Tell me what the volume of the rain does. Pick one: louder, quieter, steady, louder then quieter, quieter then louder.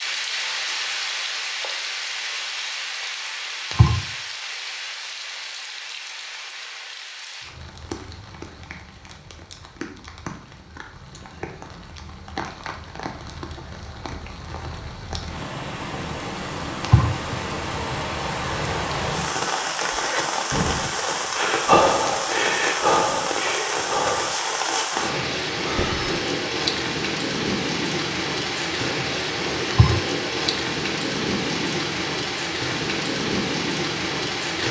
quieter then louder.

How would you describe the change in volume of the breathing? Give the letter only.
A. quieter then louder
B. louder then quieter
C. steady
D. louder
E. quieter
B.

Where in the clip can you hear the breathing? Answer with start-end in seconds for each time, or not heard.
19.9-26.1.